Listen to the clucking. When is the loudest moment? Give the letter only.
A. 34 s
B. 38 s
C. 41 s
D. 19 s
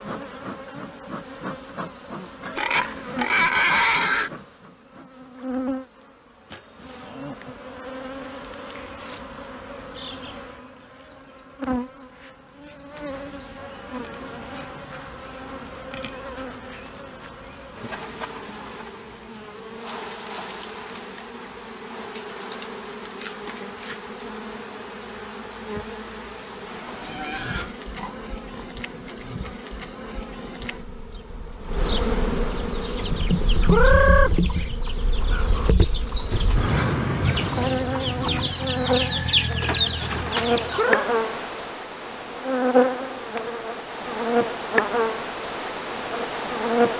A.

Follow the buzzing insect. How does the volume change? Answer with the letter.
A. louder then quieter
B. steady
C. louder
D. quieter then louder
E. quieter
C.